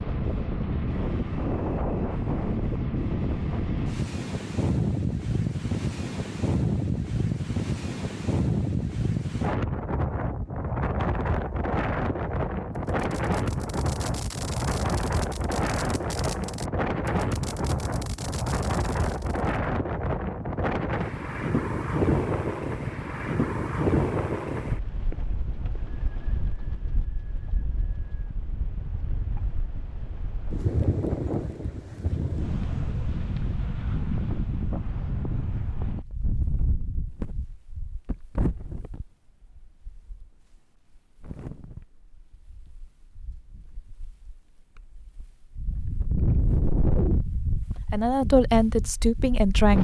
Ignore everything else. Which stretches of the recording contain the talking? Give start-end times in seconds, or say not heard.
47.9-49.8.